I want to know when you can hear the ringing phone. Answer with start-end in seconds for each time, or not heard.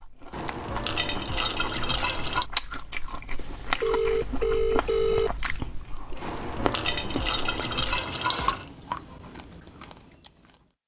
3.4-5.3.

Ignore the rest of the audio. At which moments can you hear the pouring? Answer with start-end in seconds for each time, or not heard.
0.3-2.5, 6.2-8.7.